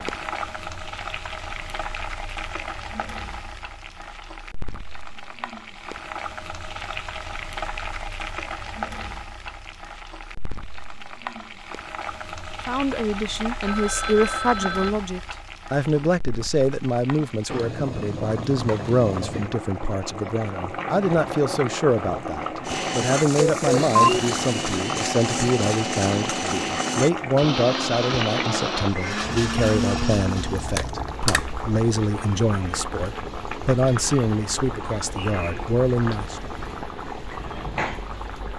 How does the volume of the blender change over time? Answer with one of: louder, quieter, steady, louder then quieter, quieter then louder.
steady.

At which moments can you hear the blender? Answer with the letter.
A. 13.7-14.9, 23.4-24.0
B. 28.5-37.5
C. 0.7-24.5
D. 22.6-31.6
D.